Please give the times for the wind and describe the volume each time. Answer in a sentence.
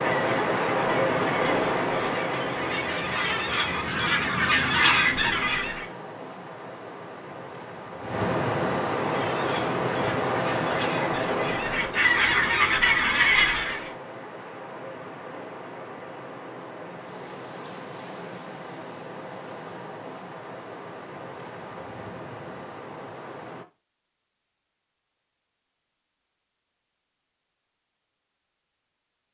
You can hear the wind from 0.0 to 23.6 s, getting quieter.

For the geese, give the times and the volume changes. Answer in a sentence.
The geese can be heard from 0.0 to 5.8 s, getting louder; and from 9.1 to 13.9 s, getting louder.